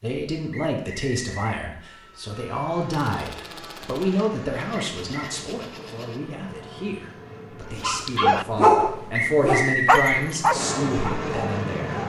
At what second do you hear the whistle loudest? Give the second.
10 s.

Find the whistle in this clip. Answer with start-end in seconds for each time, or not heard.
0.5-1.4, 4.8-5.3, 9.2-10.2.